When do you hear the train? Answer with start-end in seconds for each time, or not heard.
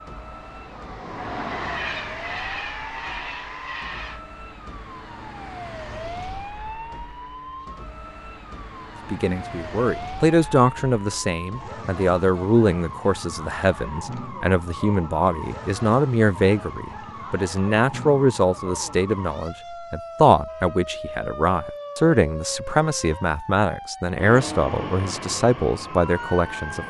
0.0-4.2, 24.1-26.8.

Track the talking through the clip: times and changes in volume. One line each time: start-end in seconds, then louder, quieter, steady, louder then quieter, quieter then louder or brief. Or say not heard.
9.1-26.8 steady.